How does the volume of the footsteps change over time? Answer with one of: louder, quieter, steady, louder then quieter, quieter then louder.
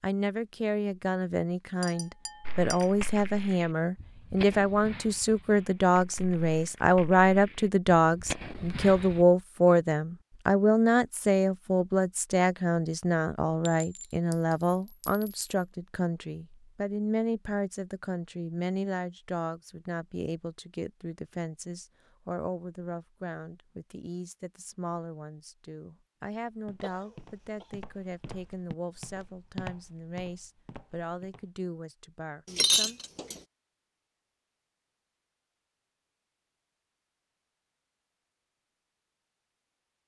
louder then quieter.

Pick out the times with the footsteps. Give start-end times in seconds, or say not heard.
26.4-31.6.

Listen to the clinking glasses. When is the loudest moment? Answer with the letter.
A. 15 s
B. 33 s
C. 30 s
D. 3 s
B.